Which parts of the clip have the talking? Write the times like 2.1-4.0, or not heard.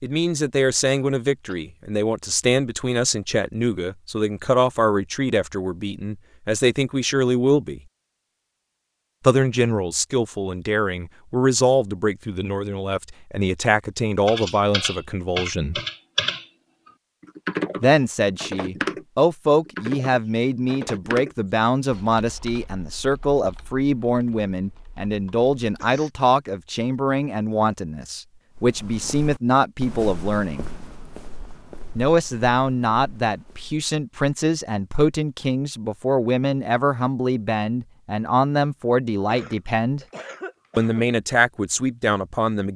0.0-7.8, 9.2-15.8, 17.8-30.6, 31.9-40.0, 40.8-42.7.